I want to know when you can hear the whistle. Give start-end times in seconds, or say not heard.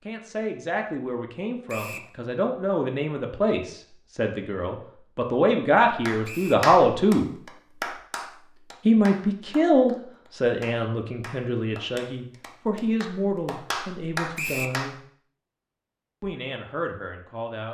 1.6-2.1, 6.2-6.7, 14.3-14.8.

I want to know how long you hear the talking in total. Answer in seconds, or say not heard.
15 s.